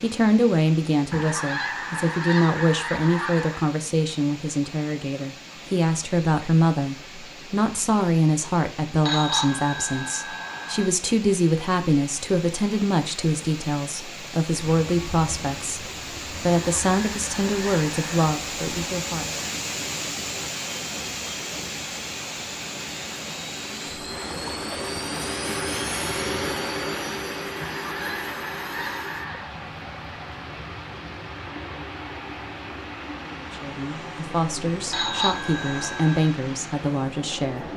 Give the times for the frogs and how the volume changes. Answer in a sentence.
You can't hear the frogs here.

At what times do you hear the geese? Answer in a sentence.
The geese can be heard from 1.1 to 3.7 s, from 16.6 to 18.2 s and from 27.6 to 29.5 s.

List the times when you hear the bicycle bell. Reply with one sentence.
The bicycle bell can be heard from 9.0 to 10.8 s and from 34.9 to 36.2 s.